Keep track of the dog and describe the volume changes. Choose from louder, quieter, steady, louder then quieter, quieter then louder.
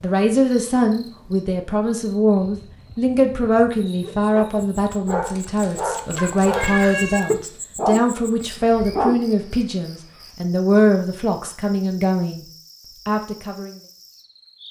louder.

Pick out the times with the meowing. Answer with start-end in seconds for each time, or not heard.
5.2-7.2.